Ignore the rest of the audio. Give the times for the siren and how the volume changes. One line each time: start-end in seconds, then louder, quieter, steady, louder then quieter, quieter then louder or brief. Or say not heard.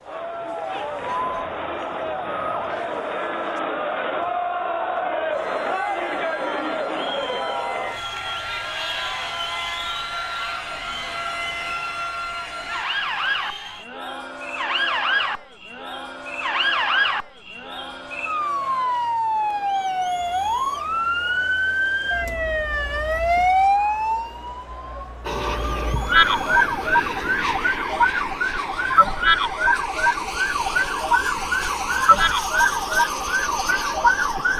0.0-34.5 louder.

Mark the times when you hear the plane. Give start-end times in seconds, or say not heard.
25.2-34.5.